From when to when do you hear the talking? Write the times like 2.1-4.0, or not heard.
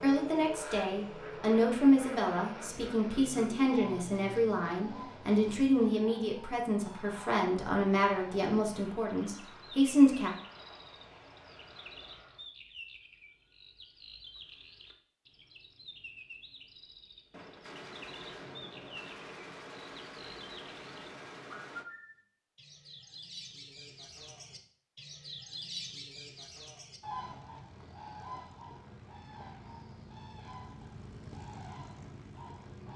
0.0-10.3.